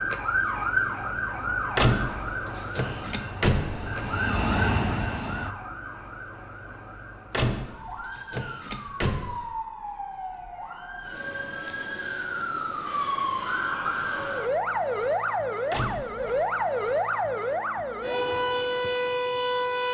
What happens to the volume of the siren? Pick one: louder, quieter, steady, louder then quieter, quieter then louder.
quieter then louder.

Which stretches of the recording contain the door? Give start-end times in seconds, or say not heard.
1.8-4.2, 7.3-9.5, 15.7-16.4.